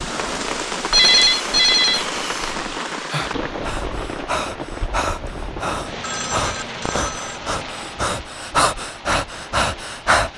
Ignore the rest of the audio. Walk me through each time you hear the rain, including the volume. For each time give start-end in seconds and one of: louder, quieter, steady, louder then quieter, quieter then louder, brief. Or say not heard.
0.0-10.3 quieter.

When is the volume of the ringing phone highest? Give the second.
1 s.